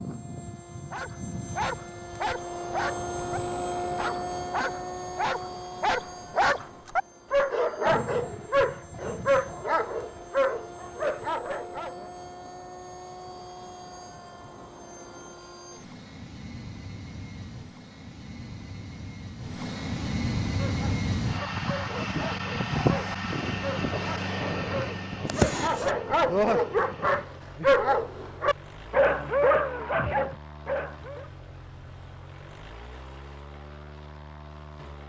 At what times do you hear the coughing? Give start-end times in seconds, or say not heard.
25.2-25.9.